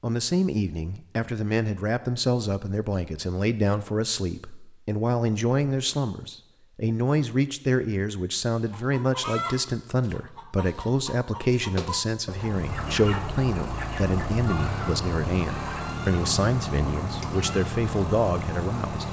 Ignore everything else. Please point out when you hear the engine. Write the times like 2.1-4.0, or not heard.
12.3-19.0.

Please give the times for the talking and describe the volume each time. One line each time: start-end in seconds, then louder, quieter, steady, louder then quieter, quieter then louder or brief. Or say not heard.
0.0-19.0 steady.